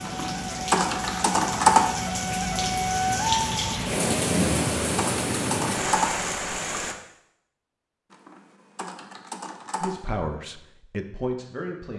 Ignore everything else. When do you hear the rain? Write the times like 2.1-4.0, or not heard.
0.0-7.0.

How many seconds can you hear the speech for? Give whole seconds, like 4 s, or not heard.
2 s.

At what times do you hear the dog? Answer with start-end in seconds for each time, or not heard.
not heard.